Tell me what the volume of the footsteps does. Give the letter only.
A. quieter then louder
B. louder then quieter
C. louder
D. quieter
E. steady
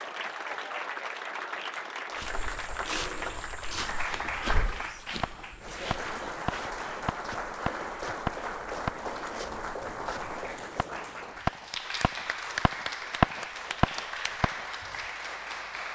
D.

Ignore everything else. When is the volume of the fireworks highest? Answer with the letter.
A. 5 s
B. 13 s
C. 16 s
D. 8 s
B.